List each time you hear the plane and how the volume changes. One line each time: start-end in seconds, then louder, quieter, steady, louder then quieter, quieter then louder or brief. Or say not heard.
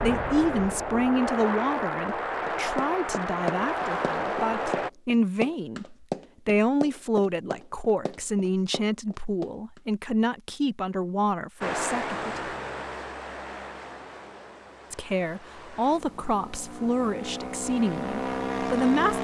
0.0-4.9 steady
11.6-19.1 quieter then louder.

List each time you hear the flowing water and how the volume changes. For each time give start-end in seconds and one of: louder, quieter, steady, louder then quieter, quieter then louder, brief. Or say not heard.
not heard.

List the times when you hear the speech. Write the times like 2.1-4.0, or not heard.
0.0-12.4, 14.9-19.1.